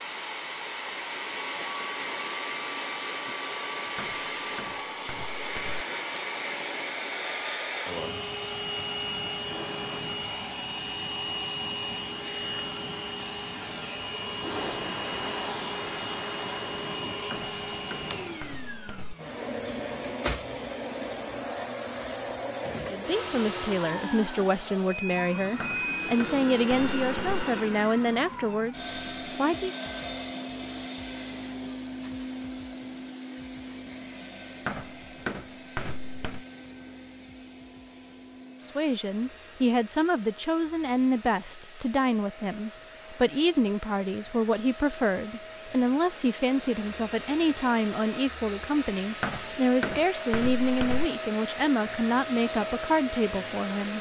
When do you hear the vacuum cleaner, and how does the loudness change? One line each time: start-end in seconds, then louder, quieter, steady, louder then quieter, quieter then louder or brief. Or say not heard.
0.0-53.9 quieter then louder.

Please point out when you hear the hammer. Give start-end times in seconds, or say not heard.
4.0-5.8, 17.3-19.1, 25.6-27.4, 34.6-36.5, 49.2-51.0.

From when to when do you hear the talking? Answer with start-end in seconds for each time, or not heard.
22.9-29.8, 38.6-53.9.